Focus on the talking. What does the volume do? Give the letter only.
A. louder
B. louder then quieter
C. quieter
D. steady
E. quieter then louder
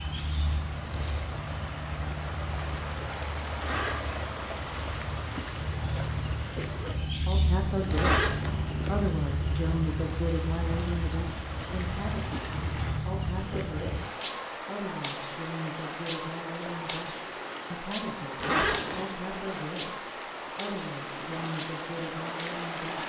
C.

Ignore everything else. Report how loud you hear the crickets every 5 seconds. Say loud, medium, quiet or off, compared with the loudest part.
medium, loud, loud, loud, medium.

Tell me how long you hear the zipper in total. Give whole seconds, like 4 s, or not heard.
3 s.